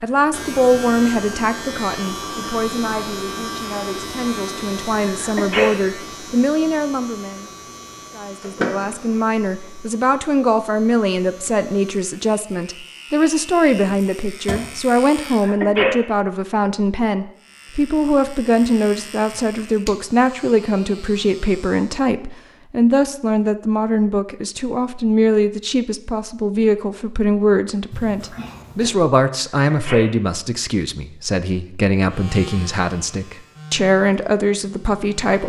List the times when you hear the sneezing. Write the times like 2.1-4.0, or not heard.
5.0-5.7, 15.2-15.9, 29.5-30.1.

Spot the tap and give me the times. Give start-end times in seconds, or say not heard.
not heard.